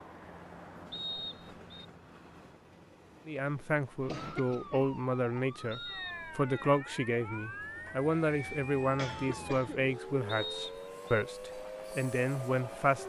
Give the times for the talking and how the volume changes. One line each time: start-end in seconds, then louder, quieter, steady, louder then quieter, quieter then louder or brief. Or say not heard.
3.2-13.0 steady.